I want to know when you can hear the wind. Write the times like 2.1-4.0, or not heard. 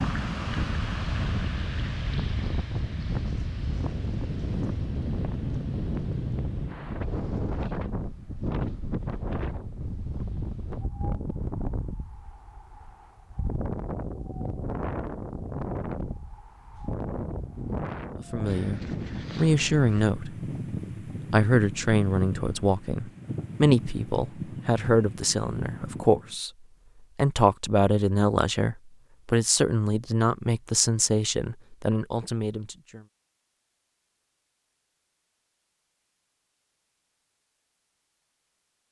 0.0-26.4.